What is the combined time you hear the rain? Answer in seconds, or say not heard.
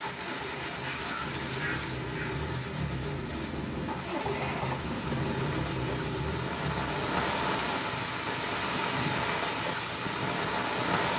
11 s.